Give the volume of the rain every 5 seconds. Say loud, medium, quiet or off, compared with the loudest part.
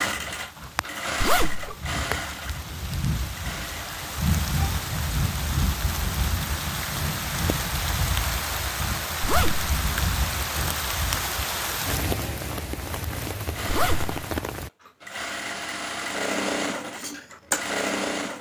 loud, loud, loud, off.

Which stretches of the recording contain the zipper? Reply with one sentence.
The zipper can be heard from 1.2 to 1.8 s, from 9.2 to 9.7 s and from 13.7 to 14.2 s.